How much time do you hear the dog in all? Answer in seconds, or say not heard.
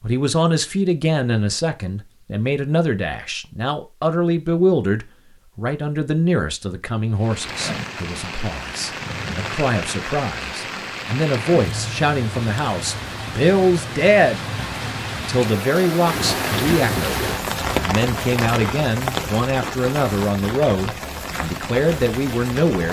not heard.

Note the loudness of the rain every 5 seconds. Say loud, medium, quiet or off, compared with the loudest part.
off, medium, medium, loud, medium.